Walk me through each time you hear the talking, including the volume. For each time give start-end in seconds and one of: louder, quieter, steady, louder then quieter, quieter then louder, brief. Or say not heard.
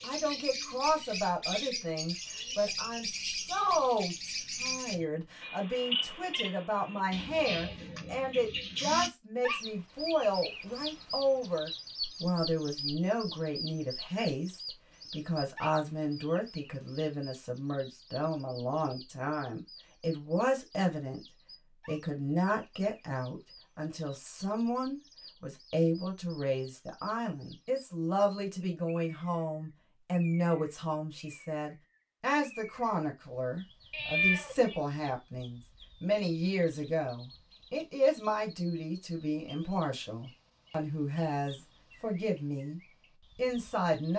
0.0-21.2 steady
21.9-44.1 steady.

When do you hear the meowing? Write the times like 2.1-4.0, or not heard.
33.9-34.8.